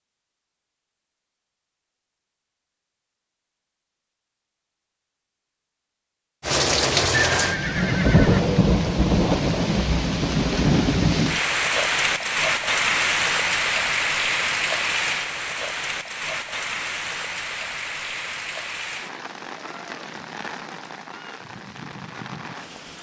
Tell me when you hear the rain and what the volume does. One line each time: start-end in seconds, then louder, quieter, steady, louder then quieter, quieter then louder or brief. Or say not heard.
6.4-22.9 quieter.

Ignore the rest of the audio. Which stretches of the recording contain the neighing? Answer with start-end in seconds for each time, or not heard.
7.3-8.7.